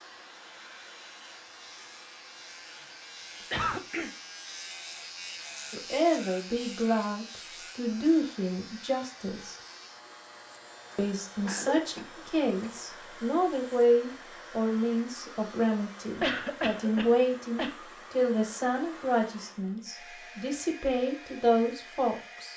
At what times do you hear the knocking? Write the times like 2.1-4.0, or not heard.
not heard.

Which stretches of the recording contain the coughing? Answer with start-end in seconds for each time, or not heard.
3.5-4.1, 11.4-12.7, 16.2-17.8.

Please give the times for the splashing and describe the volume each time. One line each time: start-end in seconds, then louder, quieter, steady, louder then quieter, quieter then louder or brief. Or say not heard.
not heard.